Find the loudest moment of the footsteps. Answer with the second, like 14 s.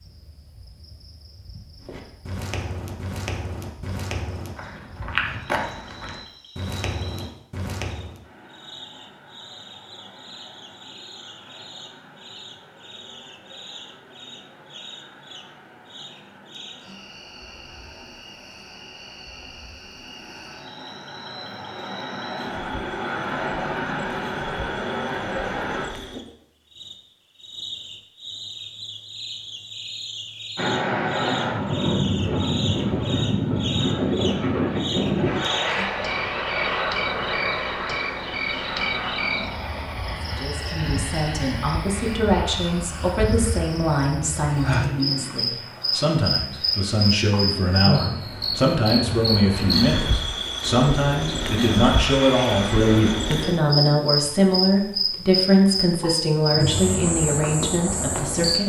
5 s.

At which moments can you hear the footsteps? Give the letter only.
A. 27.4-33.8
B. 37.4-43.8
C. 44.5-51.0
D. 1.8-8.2
D.